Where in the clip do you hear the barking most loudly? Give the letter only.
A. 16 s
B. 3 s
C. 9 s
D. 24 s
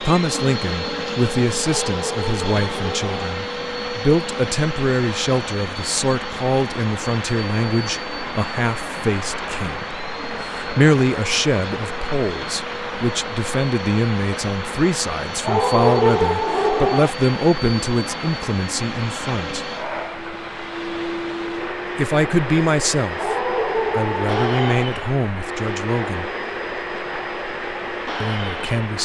A.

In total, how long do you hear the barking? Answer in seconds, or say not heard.
5 s.